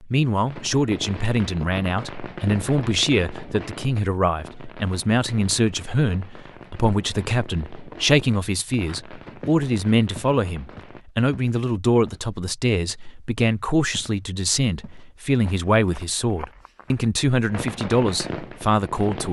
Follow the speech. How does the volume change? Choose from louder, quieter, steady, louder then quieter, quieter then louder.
steady.